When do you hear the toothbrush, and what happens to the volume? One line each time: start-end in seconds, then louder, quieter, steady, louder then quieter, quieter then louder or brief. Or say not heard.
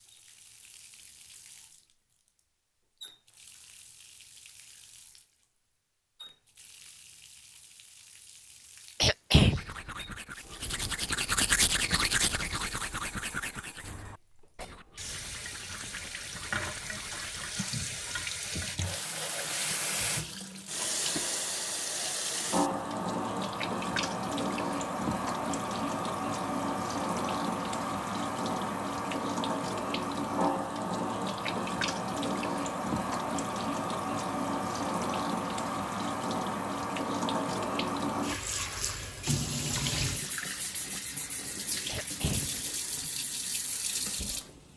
9.6-18.2 quieter.